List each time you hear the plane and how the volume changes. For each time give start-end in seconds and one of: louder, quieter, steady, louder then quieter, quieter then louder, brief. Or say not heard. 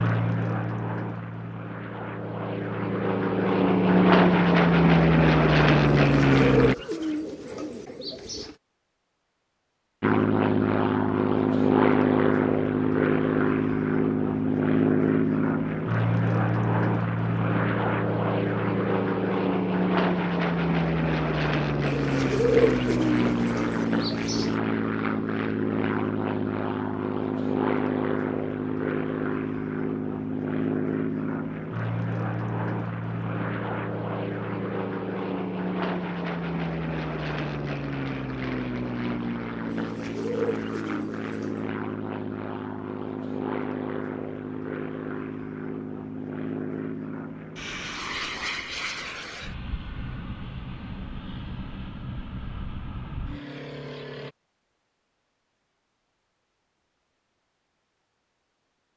0.0-6.8 louder
10.0-54.4 quieter.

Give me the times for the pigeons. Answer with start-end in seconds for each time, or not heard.
6.0-8.6, 21.8-24.6, 39.6-41.6.